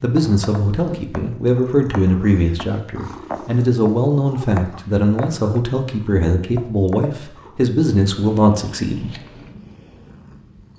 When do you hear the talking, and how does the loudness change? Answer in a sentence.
You can hear the talking from 0.0 to 9.1 s, at a steady volume.